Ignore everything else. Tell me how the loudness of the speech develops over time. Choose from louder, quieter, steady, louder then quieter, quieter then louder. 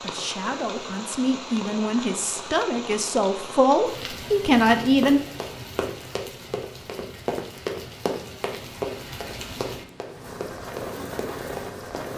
louder.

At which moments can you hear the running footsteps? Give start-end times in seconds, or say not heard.
5.0-12.1.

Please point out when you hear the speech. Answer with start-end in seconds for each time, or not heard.
0.0-5.2.